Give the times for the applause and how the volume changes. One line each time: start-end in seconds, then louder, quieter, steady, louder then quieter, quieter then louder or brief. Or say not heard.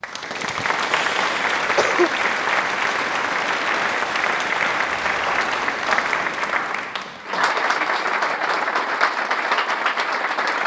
0.0-10.6 steady.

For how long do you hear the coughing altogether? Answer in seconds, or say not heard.
2 s.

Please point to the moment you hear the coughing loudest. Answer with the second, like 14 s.
2 s.